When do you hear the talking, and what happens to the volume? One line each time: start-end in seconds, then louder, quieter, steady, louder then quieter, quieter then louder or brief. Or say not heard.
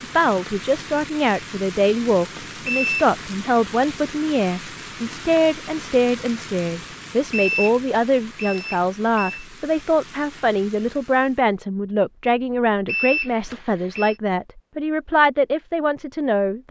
0.0-16.6 steady.